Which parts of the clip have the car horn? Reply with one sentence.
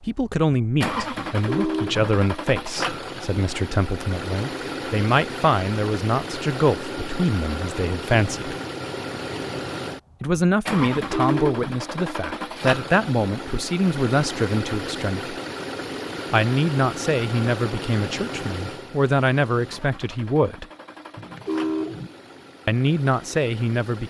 The car horn can be heard from 1.3 to 2.1 s, from 10.9 to 11.8 s and from 21.1 to 22.1 s.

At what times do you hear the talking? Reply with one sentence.
You can hear the talking from 0.0 to 8.6 s, from 10.2 to 15.3 s, from 16.3 to 20.6 s and from 22.6 to 24.0 s.